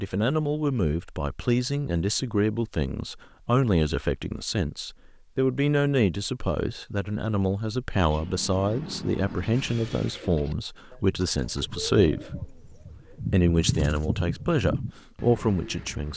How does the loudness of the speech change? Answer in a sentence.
The volume of the speech stays about the same.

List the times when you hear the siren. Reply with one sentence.
The siren can't be heard in this clip.